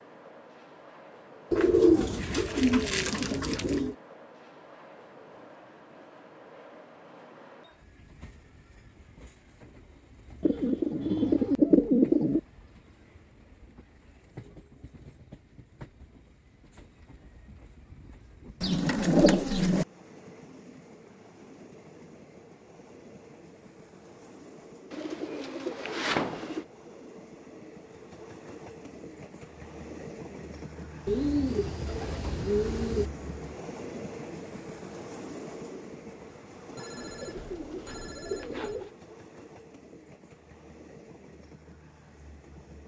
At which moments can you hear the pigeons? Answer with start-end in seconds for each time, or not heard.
1.5-4.0, 10.4-12.4, 18.6-19.9, 24.9-26.6, 31.1-33.1, 37.0-38.9.